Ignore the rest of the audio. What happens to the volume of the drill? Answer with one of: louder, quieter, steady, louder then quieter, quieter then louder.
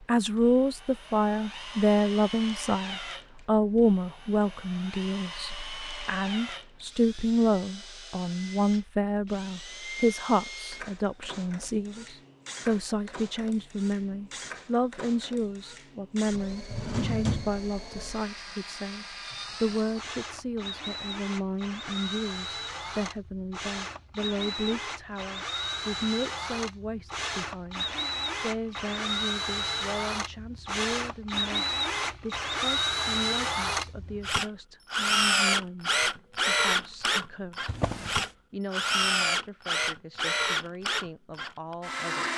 louder.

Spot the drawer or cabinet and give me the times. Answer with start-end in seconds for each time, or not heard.
16.5-18.1, 37.6-38.2.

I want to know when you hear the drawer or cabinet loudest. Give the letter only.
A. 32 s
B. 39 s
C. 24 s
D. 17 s
D.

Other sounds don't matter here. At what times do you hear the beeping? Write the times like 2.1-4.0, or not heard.
not heard.